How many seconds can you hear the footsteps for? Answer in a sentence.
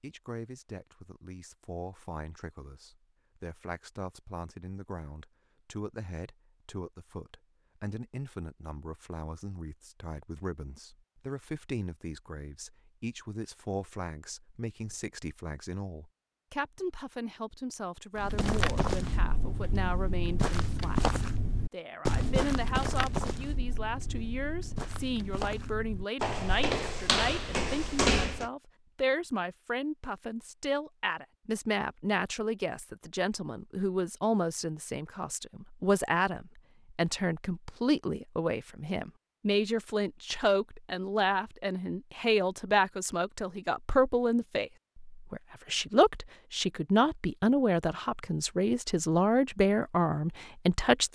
You can hear the footsteps for 10 seconds altogether.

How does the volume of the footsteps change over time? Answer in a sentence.
The volume of the footsteps goes down, then up.